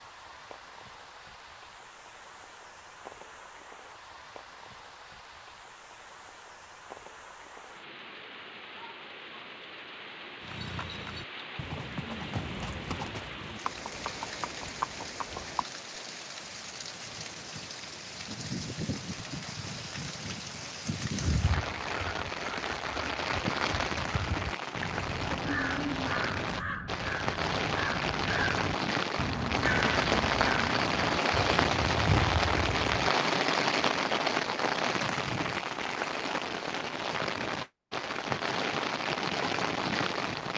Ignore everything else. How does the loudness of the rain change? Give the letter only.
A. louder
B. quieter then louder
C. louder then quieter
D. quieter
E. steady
A.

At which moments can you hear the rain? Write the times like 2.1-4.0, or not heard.
0.0-40.5.